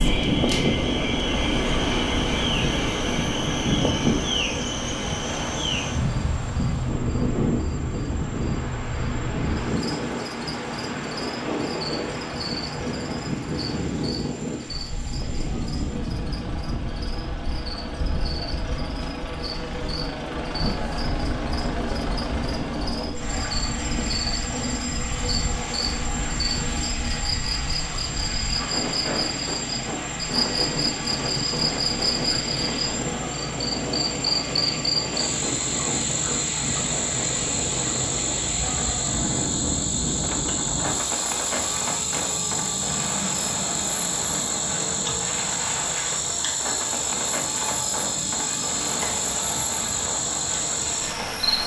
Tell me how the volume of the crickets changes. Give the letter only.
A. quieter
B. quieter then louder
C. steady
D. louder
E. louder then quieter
B.